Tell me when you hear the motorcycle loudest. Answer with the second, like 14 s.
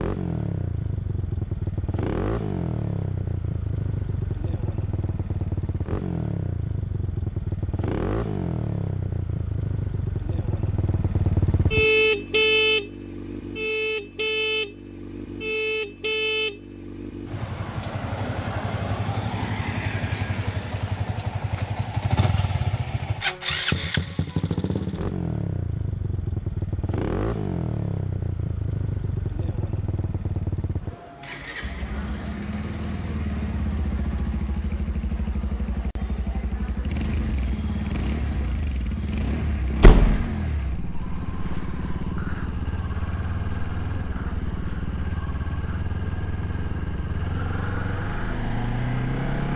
12 s.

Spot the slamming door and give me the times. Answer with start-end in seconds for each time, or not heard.
39.8-40.3.